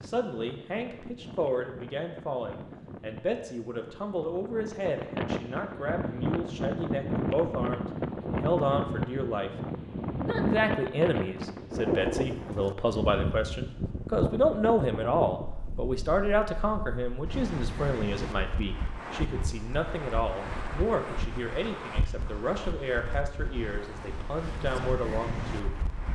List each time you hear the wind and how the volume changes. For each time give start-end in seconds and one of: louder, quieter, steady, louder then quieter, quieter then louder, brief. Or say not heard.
0.0-26.0 louder then quieter.